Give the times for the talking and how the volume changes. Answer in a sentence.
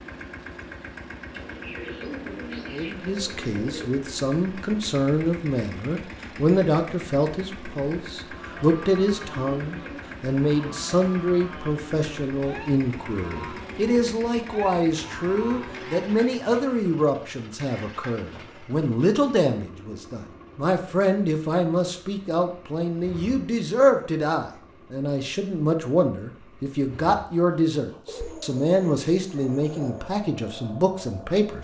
You can hear the talking from 2.7 to 31.5 s, at a steady volume.